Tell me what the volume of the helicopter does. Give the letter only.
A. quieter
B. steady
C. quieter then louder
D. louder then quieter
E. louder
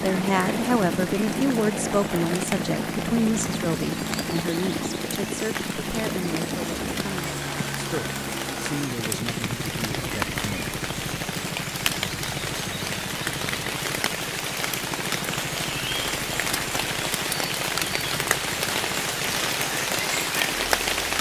A.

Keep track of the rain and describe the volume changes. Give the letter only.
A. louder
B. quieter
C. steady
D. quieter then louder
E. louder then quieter
A.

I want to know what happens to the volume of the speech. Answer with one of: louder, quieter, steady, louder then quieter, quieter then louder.
quieter.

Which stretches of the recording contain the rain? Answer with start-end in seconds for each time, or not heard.
0.0-21.1.